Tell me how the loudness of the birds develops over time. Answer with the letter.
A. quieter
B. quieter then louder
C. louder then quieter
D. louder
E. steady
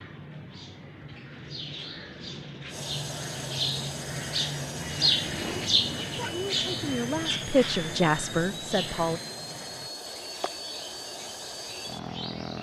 C.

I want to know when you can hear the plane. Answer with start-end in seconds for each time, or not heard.
2.6-12.5.